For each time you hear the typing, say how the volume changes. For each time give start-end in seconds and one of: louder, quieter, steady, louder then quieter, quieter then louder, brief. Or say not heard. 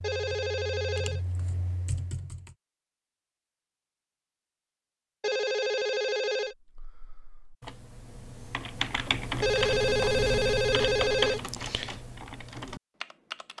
0.0-2.5 brief
6.5-13.5 louder then quieter.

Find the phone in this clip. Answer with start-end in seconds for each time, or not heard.
0.0-1.2, 5.2-6.5, 9.4-11.4.